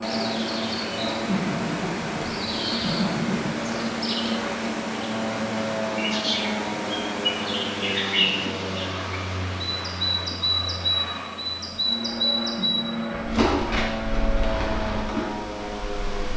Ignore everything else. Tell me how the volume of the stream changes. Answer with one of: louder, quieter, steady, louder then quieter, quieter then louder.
quieter.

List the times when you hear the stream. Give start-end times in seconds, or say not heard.
0.0-16.3.